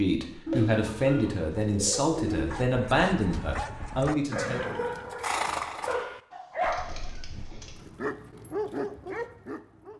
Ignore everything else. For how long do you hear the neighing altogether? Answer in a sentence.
You can hear the neighing for 2 seconds altogether.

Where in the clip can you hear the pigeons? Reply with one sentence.
The pigeons can be heard from 0.5 to 2.7 s and from 6.6 to 7.8 s.